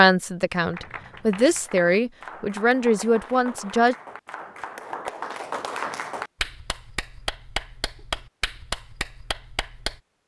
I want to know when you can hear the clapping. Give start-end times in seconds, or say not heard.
0.6-10.0.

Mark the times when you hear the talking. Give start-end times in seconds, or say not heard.
0.0-4.0.